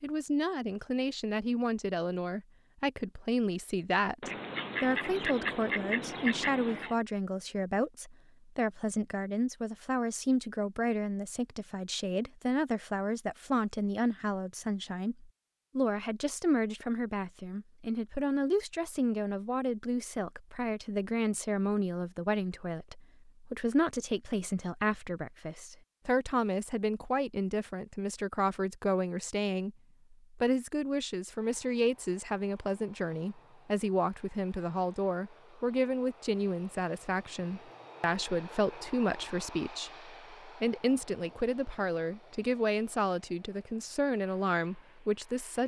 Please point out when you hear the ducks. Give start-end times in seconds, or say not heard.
4.2-7.0.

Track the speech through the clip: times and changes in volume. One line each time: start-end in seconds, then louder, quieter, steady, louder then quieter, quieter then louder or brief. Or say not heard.
0.0-45.6 steady.